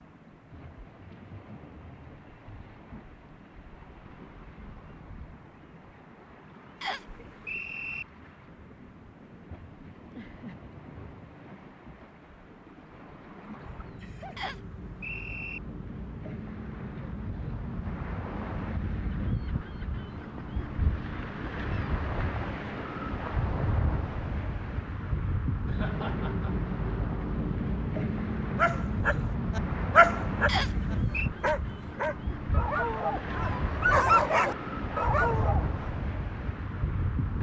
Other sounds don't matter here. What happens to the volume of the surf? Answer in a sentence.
The loudness of the surf goes up.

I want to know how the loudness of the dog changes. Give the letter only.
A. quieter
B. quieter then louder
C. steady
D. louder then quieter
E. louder
B.